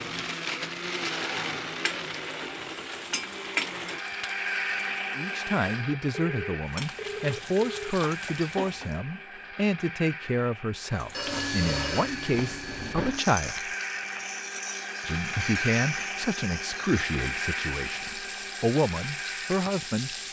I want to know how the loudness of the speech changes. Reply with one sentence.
The volume of the speech stays about the same.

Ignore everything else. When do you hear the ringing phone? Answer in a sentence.
You can hear the ringing phone from 6.0 to 8.0 s and from 11.1 to 13.2 s.